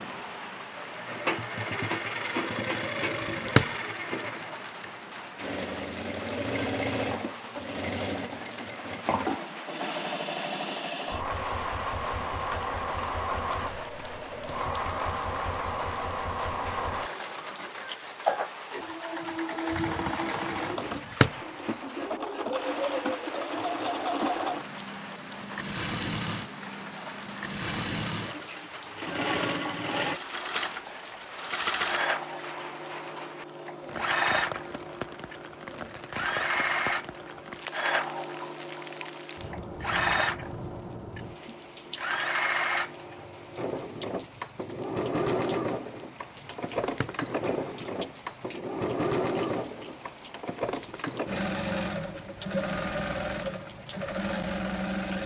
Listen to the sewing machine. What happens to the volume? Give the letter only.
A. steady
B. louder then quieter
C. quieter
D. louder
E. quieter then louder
A.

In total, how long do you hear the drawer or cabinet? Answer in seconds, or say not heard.
2 s.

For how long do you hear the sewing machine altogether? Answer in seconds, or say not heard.
55 s.